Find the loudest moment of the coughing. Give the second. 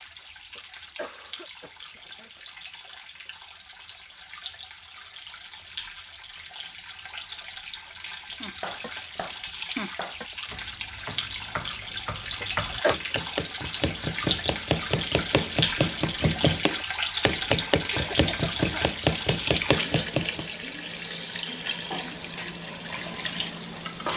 13 s.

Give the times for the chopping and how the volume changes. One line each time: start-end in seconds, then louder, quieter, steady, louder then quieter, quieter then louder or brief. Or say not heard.
8.4-20.5 louder.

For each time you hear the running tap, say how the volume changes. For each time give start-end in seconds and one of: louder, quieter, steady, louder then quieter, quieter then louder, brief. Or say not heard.
0.0-24.1 louder.